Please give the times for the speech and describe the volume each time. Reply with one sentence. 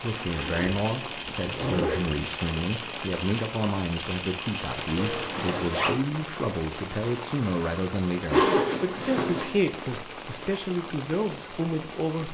You can hear the speech from 0.0 to 12.2 s, at a steady volume.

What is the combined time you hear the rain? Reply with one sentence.
You can hear the rain for 12 seconds altogether.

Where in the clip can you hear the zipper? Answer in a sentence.
You can hear the zipper from 0.3 to 2.0 s, from 5.0 to 6.0 s and from 8.3 to 9.6 s.